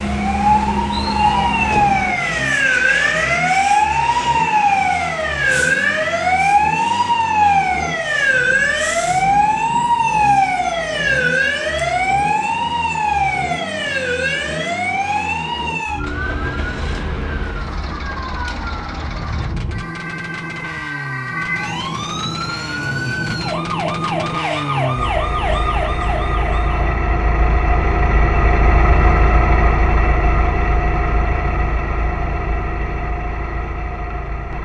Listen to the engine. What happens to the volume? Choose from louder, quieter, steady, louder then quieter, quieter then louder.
louder.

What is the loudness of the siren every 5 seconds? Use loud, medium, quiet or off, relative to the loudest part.
loud, loud, loud, medium, medium, medium, off.